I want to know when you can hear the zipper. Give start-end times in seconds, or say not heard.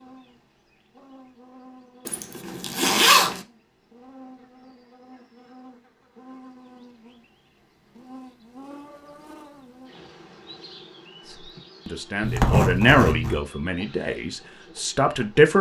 2.0-3.4, 12.2-13.4.